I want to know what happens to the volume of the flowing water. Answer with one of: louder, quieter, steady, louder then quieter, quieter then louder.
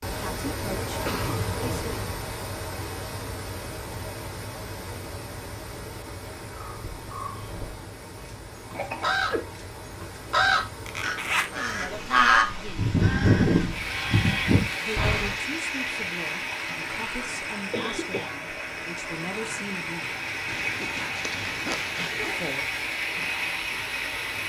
quieter then louder.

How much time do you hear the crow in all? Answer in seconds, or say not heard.
9 s.